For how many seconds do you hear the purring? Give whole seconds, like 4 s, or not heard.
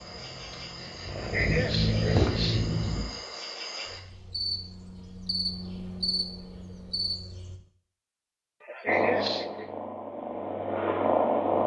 6 s.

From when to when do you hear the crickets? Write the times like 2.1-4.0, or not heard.
0.0-7.6.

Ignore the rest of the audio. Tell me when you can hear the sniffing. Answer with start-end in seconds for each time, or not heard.
1.1-2.9, 8.6-9.7.